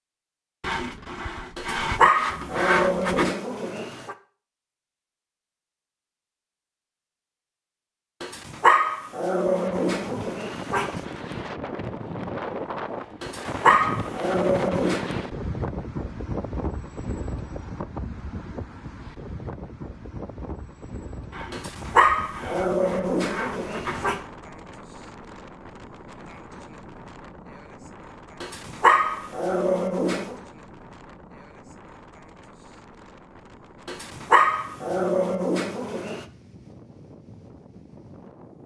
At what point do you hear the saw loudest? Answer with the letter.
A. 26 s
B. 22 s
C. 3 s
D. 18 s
C.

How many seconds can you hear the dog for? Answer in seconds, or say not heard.
14 s.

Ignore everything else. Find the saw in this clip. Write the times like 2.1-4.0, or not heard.
0.6-3.4, 21.3-24.2.